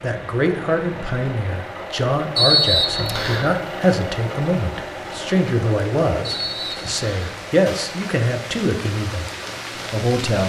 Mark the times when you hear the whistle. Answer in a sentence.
The whistle can be heard from 2.4 to 3.5 s and from 6.2 to 7.3 s.